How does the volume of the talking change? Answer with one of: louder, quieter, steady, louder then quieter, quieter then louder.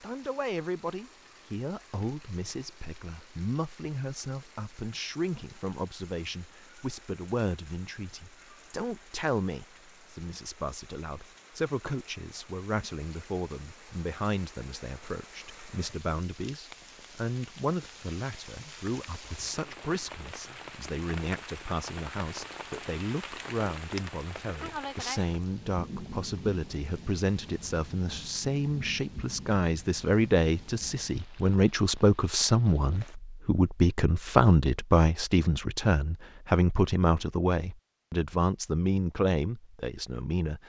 louder.